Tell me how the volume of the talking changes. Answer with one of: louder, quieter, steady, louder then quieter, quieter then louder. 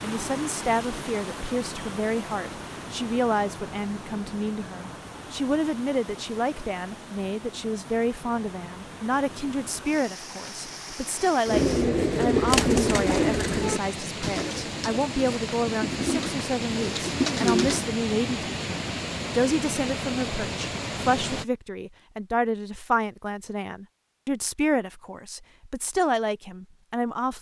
steady.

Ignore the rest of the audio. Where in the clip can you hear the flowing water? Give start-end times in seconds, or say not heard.
0.0-21.4.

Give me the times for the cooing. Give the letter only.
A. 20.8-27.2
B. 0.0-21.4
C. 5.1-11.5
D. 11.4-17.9
D.